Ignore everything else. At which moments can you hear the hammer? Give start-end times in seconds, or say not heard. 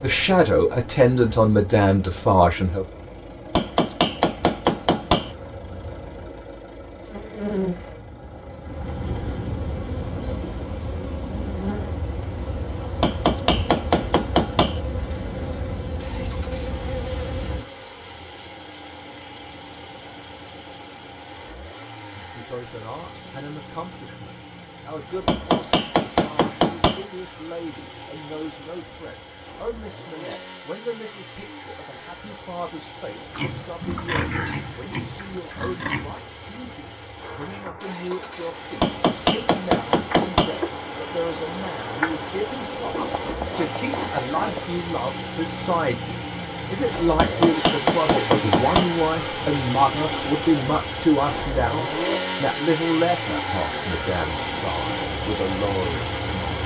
3.5-5.3, 13.0-14.8, 25.2-27.1, 38.8-40.6, 47.1-49.0.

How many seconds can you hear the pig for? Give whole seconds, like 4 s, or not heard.
3 s.